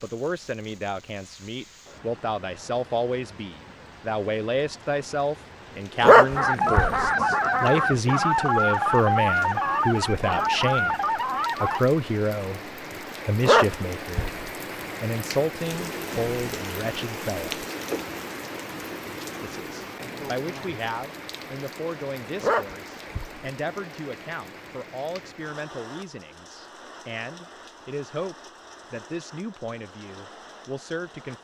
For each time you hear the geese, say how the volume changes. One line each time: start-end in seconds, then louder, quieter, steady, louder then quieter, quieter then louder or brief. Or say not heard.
6.3-11.8 steady.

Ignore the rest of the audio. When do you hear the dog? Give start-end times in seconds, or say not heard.
6.0-7.0, 13.4-14.4, 22.4-23.5.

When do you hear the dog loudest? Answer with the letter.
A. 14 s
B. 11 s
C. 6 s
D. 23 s
C.